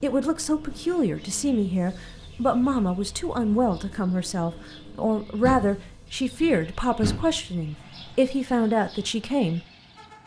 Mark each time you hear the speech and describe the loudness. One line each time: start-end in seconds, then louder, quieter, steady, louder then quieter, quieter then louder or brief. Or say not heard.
0.0-9.6 steady.